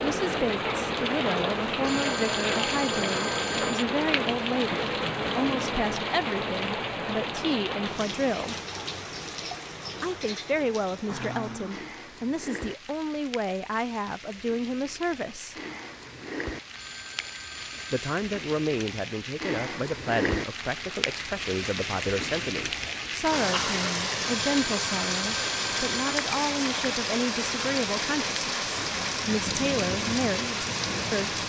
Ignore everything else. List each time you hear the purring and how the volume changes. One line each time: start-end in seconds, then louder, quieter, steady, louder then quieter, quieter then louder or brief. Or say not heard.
not heard.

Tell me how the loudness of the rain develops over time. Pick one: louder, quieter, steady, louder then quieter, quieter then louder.
quieter then louder.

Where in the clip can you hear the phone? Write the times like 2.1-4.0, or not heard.
1.8-3.9, 16.8-18.1, 24.2-26.2.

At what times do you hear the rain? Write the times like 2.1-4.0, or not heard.
0.0-31.4.